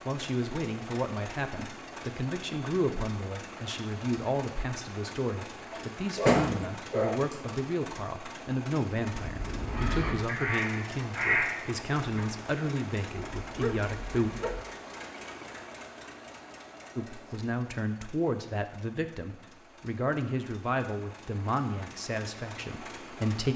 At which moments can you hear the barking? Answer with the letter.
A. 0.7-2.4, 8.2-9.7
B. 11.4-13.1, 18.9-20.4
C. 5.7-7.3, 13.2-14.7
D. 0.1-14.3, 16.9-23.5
C.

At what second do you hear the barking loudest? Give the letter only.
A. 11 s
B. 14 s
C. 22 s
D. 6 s
D.